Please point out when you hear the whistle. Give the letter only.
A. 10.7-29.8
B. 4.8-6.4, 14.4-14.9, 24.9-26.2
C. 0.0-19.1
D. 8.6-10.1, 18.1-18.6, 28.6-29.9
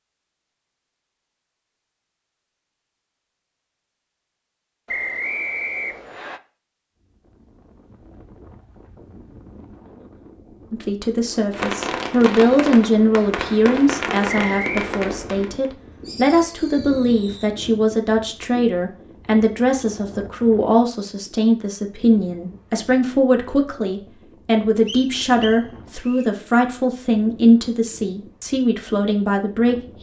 B.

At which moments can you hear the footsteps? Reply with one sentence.
You can't hear the footsteps here.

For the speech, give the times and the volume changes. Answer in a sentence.
The speech can be heard from 10.7 to 29.8 s, at a steady volume.